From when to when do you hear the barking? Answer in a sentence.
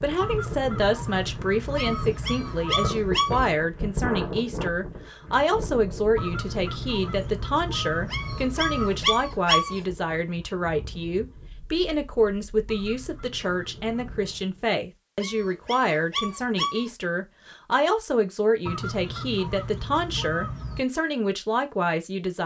The barking can be heard from 1.8 to 3.5 s, from 8.1 to 9.8 s and from 15.2 to 16.9 s.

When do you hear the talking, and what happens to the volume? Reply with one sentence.
You can hear the talking from 0.0 to 22.4 s, at a steady volume.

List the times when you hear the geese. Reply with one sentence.
The geese can be heard from 0.2 to 3.1 s, from 6.2 to 9.1 s, from 12.7 to 14.1 s and from 18.6 to 20.9 s.